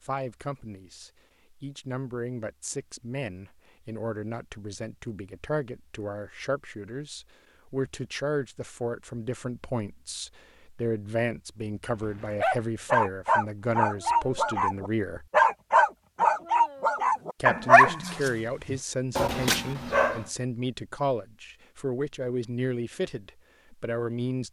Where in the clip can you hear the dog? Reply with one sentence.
The dog can be heard from 11.8 to 20.2 s.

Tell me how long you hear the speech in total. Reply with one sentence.
You can hear the speech for 22 seconds altogether.